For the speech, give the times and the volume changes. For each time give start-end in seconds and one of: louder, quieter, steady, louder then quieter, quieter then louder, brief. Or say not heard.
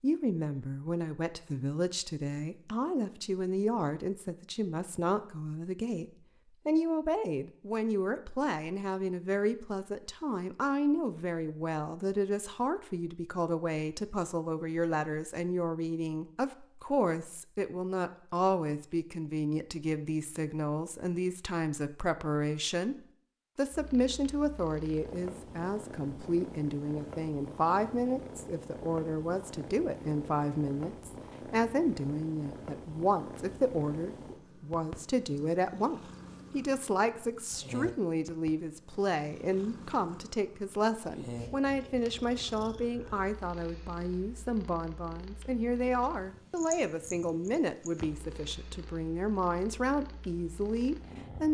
0.0-6.0 steady
6.7-51.4 steady.